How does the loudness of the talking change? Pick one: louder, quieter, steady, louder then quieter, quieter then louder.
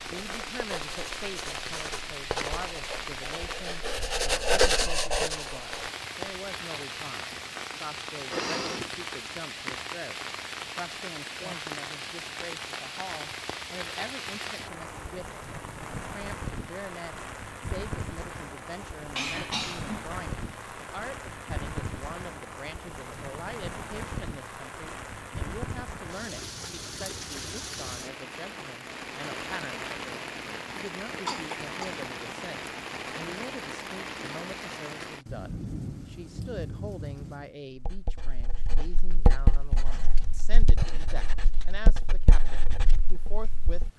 steady.